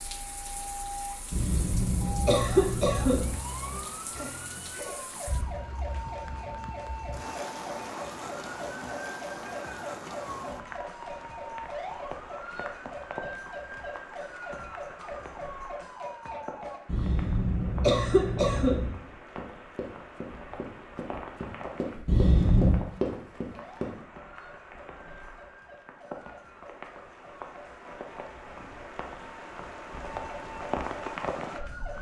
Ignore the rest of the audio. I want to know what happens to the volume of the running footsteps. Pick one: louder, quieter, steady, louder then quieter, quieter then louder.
louder.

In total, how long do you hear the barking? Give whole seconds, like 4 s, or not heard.
not heard.